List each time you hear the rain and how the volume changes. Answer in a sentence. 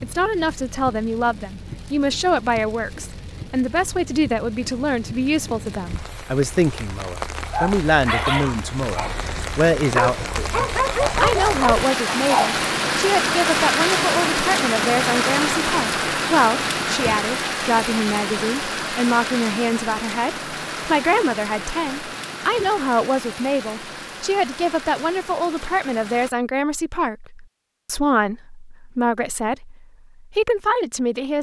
The rain can be heard from 0.0 to 26.3 s, getting louder then quieter.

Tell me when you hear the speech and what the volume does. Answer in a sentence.
You can hear the speech from 0.0 to 31.3 s, at a steady volume.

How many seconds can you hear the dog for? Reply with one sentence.
You can hear the dog for 5 seconds altogether.